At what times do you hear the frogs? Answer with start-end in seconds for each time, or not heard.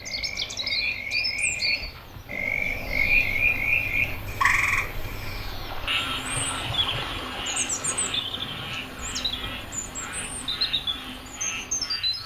0.0-12.2.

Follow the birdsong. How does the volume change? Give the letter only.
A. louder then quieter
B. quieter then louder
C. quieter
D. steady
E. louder
B.